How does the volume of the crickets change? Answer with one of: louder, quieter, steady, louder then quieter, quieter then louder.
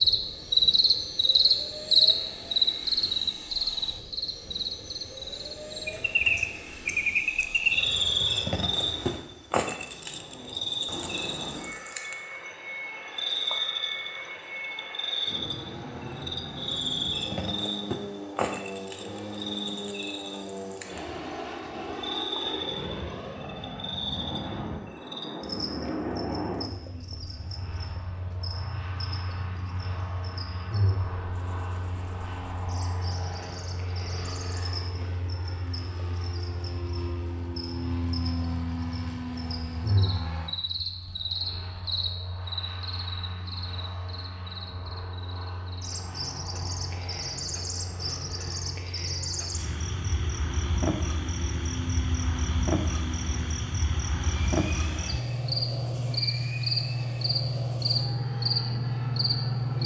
quieter then louder.